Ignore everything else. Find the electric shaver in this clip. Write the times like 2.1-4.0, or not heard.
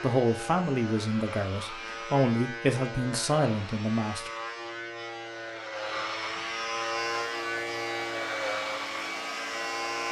0.0-10.0.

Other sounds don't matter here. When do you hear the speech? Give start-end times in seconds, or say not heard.
0.0-4.3.